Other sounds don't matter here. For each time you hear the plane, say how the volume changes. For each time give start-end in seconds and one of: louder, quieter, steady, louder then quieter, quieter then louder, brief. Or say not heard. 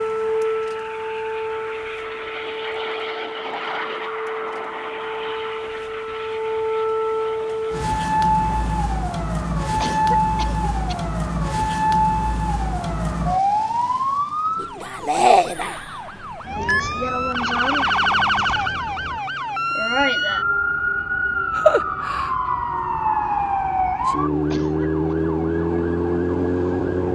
0.0-8.8 louder then quieter.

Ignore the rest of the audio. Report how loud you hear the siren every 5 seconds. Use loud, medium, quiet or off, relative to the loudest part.
medium, loud, loud, loud, loud, loud.